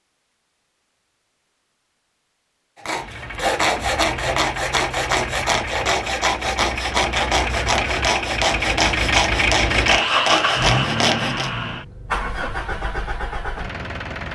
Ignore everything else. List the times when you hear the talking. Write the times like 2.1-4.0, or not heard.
not heard.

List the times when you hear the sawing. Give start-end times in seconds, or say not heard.
2.8-11.5.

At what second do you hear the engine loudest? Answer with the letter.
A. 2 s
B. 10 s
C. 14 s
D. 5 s
B.